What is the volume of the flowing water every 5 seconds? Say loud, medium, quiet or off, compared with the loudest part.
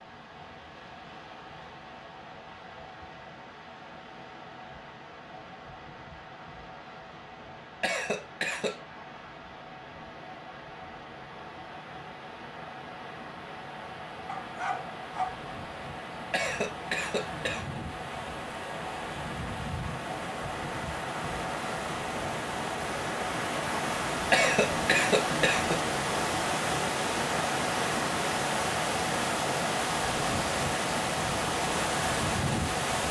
quiet, quiet, quiet, medium, loud, loud, loud.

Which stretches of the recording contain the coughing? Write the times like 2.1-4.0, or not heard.
7.8-8.8, 16.3-17.6, 24.3-25.8.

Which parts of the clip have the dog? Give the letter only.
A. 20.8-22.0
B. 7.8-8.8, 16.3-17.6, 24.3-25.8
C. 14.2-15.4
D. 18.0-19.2
C.